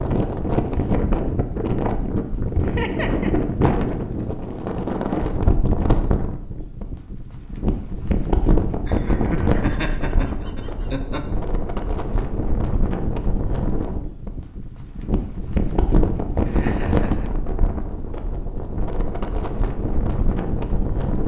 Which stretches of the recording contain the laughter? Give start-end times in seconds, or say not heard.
2.6-3.3, 8.8-11.2, 16.4-17.3.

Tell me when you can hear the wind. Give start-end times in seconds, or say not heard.
0.0-21.2.